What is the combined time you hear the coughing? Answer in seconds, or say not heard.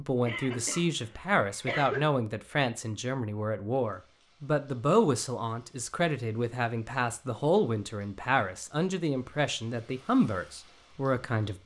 2 s.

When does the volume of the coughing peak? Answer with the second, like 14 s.
2 s.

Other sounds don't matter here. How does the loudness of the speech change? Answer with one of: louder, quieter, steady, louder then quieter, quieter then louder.
steady.